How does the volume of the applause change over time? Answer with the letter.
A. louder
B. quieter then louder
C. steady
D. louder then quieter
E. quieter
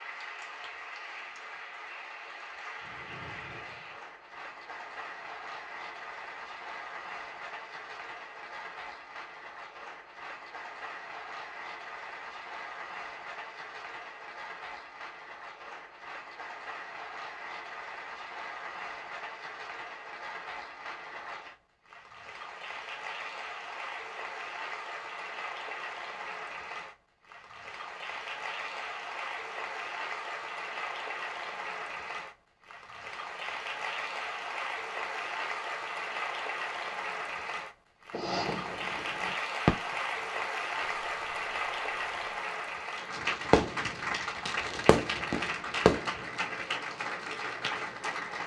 A.